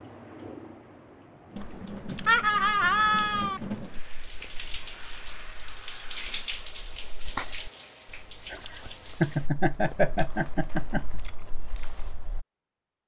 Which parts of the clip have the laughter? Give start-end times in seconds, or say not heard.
2.2-3.6, 8.5-11.1.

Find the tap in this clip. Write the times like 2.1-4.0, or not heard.
0.0-9.5.